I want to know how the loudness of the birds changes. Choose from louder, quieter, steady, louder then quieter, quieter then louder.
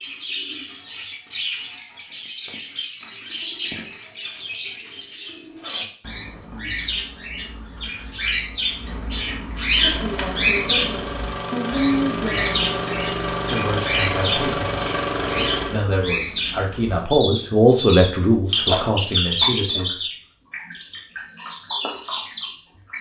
louder.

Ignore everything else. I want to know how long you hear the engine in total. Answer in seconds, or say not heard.
6 s.